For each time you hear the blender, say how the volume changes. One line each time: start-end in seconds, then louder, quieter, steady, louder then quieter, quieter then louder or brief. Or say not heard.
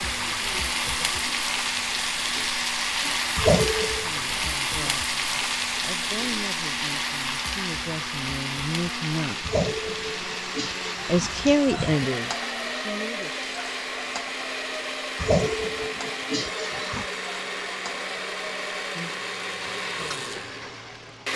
0.0-21.3 louder.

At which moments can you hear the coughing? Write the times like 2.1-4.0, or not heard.
3.4-4.1, 9.4-12.0, 15.2-17.1.